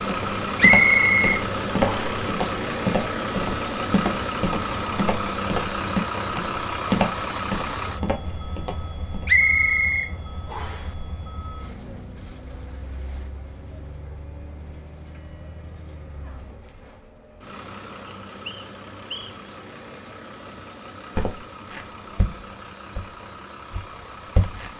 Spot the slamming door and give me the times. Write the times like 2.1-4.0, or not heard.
not heard.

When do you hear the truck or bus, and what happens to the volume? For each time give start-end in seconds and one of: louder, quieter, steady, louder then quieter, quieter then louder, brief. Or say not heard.
0.0-24.7 quieter.